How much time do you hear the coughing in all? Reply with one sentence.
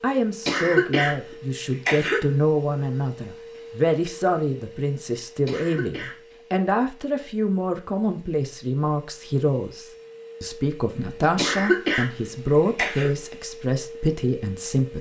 The coughing can be heard for 4 seconds in total.